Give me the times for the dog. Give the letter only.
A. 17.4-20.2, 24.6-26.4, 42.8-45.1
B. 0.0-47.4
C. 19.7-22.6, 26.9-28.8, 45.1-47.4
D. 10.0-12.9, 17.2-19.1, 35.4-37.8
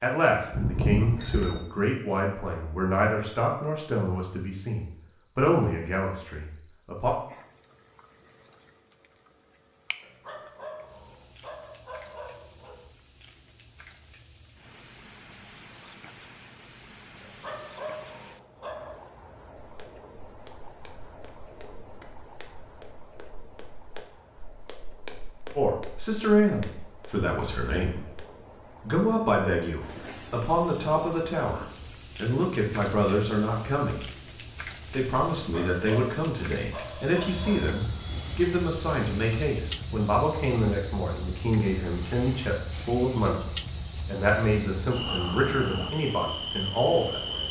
D.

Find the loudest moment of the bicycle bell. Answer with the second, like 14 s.
1 s.